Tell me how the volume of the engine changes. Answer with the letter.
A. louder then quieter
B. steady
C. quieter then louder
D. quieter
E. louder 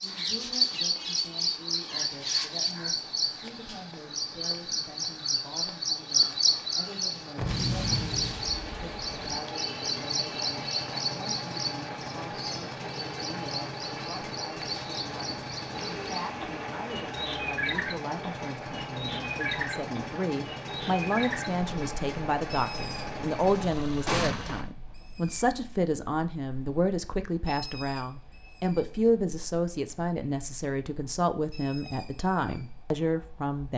E.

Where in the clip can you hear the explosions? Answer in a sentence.
The explosions can be heard from 7.3 to 9.2 s and from 24.1 to 24.6 s.